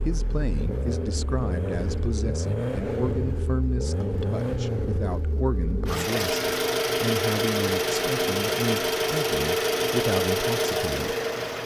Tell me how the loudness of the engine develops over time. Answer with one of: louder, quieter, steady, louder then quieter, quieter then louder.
louder.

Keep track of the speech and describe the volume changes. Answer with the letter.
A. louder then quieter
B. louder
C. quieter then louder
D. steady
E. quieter
D.